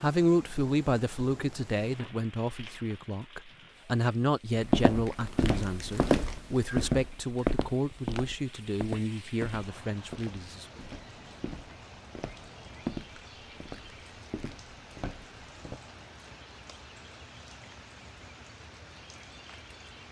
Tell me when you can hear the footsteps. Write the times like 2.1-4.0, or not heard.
4.5-15.8.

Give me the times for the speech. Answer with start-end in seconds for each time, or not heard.
0.0-10.8.